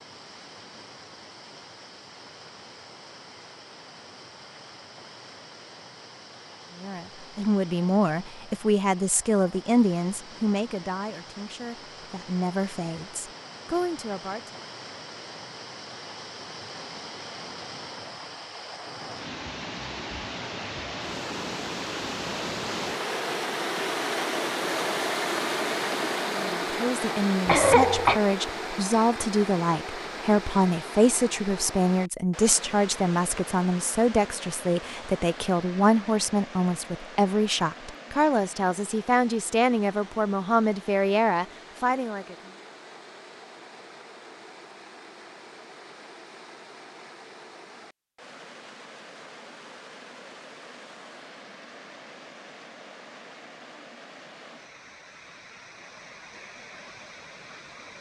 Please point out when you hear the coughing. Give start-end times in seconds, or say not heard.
27.4-28.2.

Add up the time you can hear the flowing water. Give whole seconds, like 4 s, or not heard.
58 s.